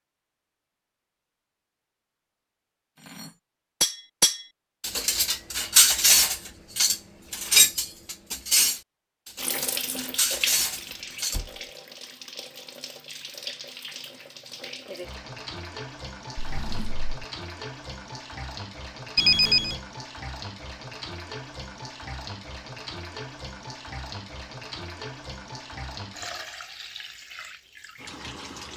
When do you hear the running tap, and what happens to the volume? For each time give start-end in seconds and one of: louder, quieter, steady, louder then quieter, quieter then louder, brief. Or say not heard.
9.3-28.7 steady.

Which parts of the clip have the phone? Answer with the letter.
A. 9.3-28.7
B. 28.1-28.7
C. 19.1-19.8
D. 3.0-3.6
C.